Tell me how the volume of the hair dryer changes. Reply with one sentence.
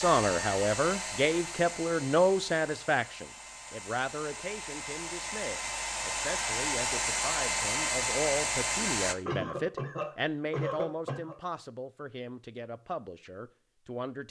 The volume of the hair dryer goes down, then up.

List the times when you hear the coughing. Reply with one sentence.
The coughing can be heard from 9.2 to 11.3 s.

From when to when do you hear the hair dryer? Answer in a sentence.
The hair dryer can be heard from 0.0 to 9.2 s.